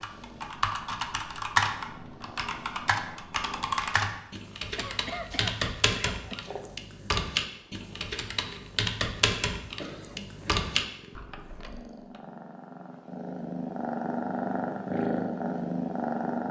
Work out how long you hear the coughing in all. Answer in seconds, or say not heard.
3 s.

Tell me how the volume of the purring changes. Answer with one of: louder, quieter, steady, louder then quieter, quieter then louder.
louder.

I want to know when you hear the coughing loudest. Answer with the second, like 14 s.
5 s.